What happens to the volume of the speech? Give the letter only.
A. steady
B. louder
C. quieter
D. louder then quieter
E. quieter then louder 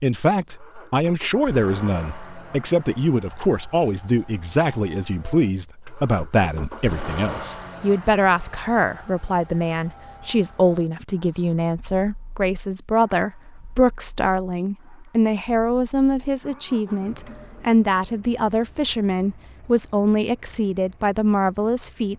A.